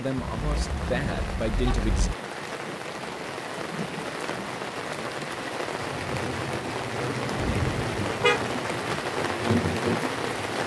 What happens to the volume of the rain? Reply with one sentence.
The loudness of the rain goes up.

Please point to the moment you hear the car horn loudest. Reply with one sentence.
The loudest moment of the car horn is at 8 seconds.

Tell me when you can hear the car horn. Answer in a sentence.
The car horn can be heard from 0.1 to 2.1 s and from 7.4 to 8.4 s.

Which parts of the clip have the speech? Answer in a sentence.
The speech can be heard from 0.0 to 2.1 s.